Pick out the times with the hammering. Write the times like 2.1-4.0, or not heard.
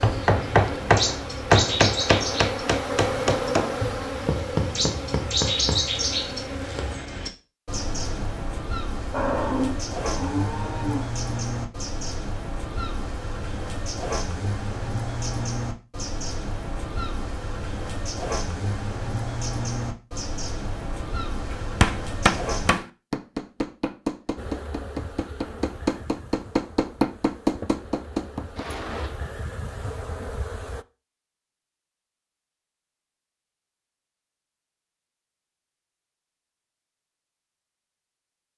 0.0-5.8, 21.5-28.6.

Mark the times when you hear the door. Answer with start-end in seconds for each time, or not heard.
28.6-29.1.